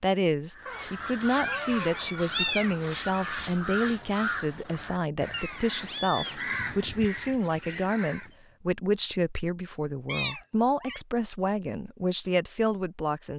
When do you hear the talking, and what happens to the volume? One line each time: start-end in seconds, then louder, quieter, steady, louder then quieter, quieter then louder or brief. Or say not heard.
0.0-13.3 steady.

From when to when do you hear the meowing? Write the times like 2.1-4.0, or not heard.
0.7-2.9, 5.3-6.3, 10.1-11.0.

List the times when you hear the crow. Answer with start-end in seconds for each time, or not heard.
0.5-8.3.